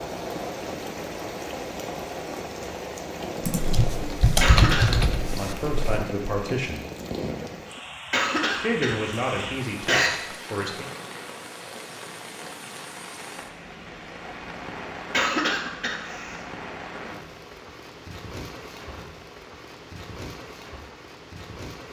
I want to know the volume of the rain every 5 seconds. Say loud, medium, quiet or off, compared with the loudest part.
loud, loud, medium, medium, medium.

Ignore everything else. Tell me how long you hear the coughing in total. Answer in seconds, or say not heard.
4 s.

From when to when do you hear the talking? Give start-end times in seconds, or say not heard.
5.3-6.8, 8.6-10.8.